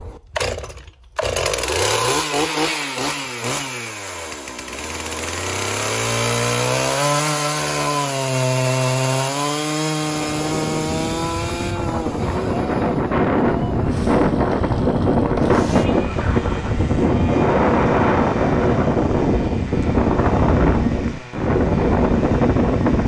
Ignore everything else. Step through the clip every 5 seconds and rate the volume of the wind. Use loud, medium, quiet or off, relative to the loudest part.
off, off, loud, loud, loud.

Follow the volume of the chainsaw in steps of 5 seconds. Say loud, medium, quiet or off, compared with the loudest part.
loud, loud, medium, quiet, quiet.